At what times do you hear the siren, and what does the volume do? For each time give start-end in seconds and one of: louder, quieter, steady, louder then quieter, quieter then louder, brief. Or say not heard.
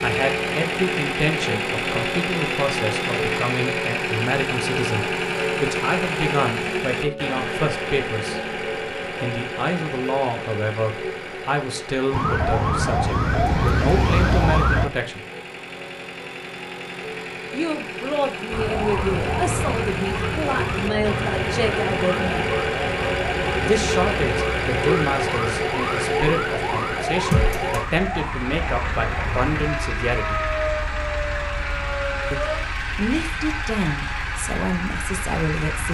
12.1-14.9 brief
18.5-32.6 steady.